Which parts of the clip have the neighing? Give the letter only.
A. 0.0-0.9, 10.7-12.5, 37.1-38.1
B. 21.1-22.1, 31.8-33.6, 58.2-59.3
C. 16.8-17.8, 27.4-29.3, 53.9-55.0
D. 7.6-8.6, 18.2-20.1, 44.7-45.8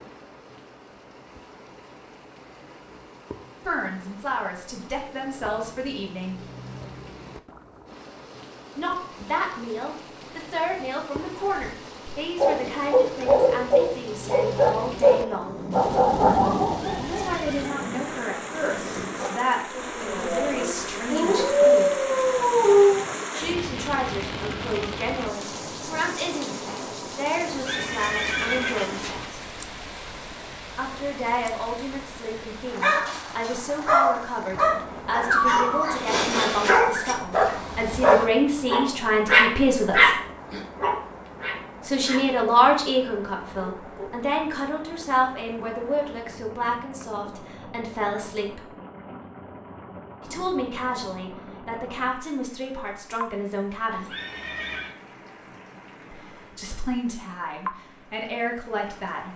C.